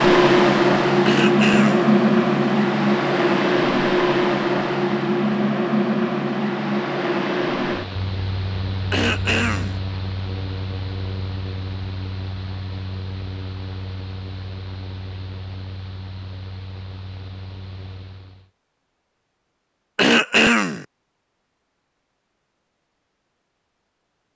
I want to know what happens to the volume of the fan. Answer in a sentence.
The loudness of the fan goes down.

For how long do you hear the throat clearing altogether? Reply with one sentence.
You can hear the throat clearing for 3 seconds altogether.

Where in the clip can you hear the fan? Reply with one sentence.
The fan can be heard from 0.0 to 18.5 s.